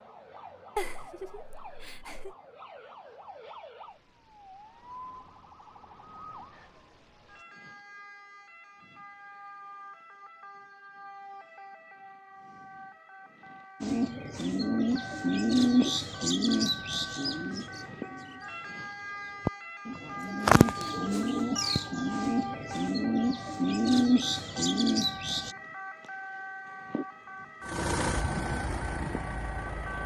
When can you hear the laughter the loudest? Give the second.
1 s.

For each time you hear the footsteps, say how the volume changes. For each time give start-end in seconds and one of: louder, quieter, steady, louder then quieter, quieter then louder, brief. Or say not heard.
not heard.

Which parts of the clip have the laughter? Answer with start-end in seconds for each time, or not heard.
0.8-2.4.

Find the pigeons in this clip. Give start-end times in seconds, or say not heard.
13.8-25.6.